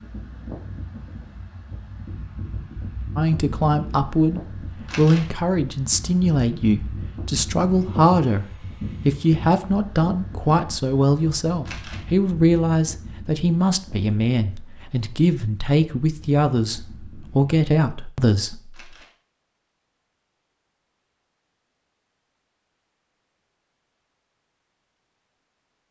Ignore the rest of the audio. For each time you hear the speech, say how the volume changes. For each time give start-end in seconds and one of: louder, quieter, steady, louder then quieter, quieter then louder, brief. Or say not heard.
3.1-18.8 steady.